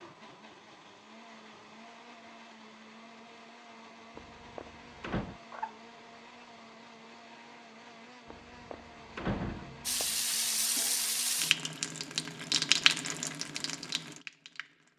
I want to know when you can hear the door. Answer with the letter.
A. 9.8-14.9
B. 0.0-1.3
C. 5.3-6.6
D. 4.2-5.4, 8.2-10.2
D.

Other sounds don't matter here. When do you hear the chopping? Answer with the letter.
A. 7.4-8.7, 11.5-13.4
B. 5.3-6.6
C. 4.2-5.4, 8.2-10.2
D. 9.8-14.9
B.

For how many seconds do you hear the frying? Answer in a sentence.
You can hear the frying for 5 seconds altogether.